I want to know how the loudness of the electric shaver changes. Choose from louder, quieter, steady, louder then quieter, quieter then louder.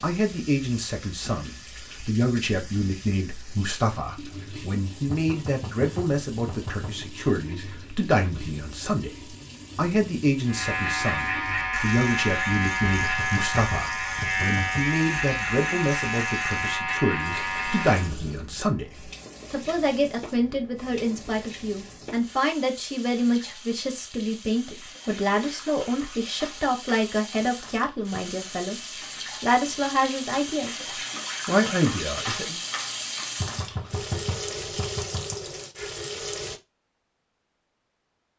steady.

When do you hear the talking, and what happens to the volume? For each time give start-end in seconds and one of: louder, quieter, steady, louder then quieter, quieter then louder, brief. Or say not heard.
0.0-30.9 steady
31.4-32.6 brief.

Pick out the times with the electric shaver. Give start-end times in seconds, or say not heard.
10.4-18.1.